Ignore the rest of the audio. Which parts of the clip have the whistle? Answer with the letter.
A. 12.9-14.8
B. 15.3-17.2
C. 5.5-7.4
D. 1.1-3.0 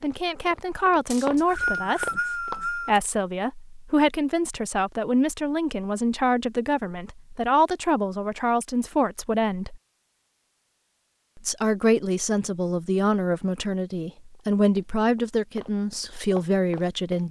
D.